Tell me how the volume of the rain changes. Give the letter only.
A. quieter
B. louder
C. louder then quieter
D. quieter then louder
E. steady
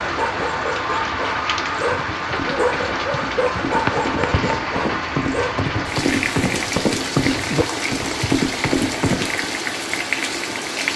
E.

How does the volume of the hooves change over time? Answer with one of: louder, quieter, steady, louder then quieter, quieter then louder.
louder.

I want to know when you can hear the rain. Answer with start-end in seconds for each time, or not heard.
0.0-10.9.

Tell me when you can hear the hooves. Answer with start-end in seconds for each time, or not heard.
1.5-9.5.